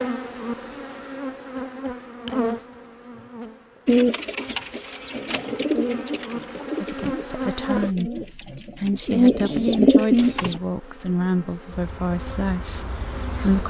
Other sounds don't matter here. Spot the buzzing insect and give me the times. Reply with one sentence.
The buzzing insect can be heard from 0.0 to 7.9 s and from 10.1 to 13.6 s.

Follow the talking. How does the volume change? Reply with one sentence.
The loudness of the talking stays about the same.